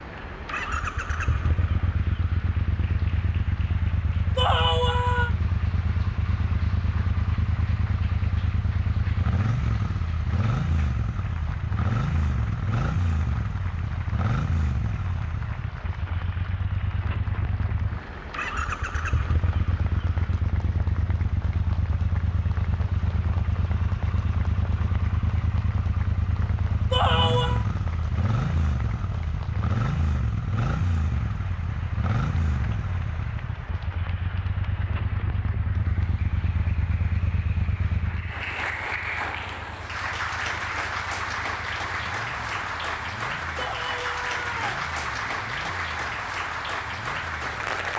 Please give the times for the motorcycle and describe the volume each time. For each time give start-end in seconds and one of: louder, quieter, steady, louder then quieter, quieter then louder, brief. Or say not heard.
0.0-47.9 quieter.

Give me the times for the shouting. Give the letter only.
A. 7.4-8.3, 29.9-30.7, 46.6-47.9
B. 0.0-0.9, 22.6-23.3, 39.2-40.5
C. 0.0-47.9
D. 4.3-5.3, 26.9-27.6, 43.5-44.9
D.